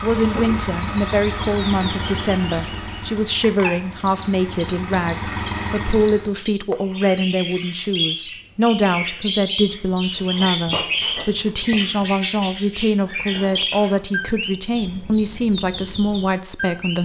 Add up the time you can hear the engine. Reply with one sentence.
You can hear the engine for 6 seconds altogether.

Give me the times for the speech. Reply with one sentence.
The speech can be heard from 0.0 to 16.9 s.